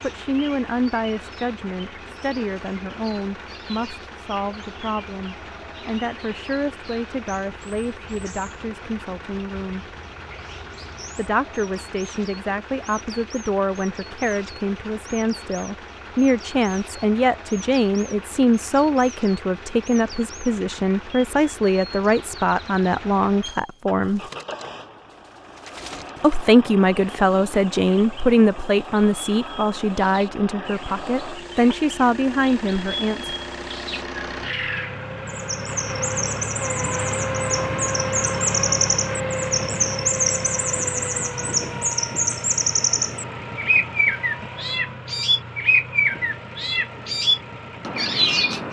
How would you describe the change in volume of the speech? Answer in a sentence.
The volume of the speech goes up.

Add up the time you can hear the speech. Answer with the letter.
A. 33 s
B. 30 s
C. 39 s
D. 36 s
B.